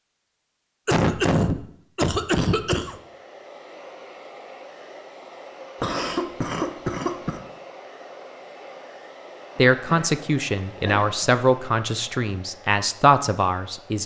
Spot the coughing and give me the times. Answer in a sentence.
You can hear the coughing from 0.8 to 3.0 s, from 5.8 to 7.4 s and from 9.6 to 11.2 s.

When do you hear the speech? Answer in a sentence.
The speech can be heard from 9.6 to 14.0 s.